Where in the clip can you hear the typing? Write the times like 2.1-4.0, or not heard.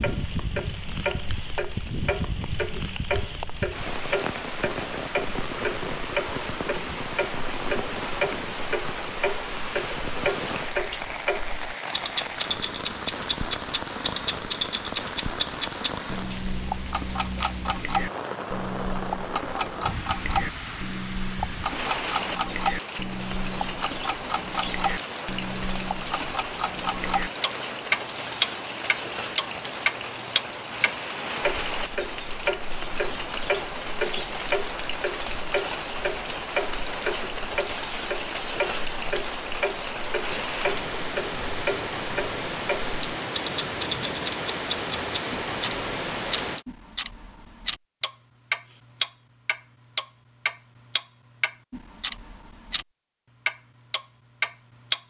not heard.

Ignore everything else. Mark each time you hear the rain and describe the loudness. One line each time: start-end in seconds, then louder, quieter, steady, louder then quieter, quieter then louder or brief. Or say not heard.
0.0-46.6 steady.